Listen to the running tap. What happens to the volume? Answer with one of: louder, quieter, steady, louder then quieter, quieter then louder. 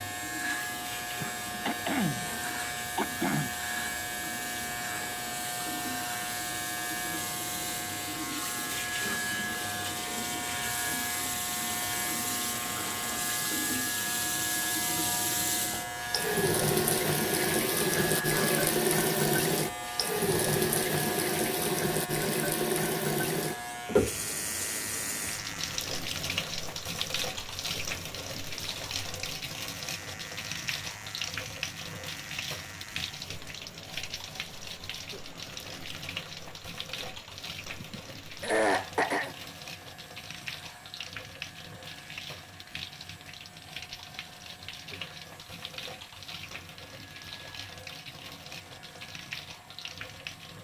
louder then quieter.